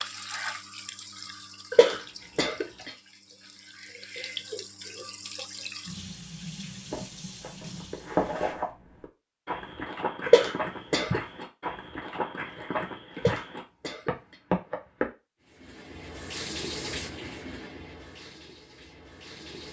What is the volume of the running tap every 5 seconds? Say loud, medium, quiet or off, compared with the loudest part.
loud, loud, off, loud.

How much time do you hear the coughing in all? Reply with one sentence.
You can hear the coughing for 3 seconds altogether.